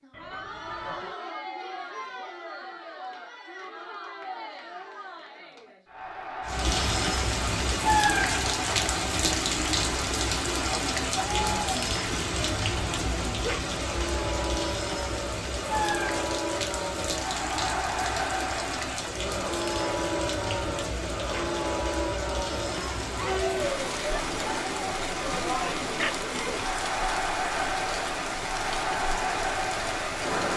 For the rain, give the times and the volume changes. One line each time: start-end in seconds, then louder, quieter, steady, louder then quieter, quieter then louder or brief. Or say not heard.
6.5-30.5 quieter.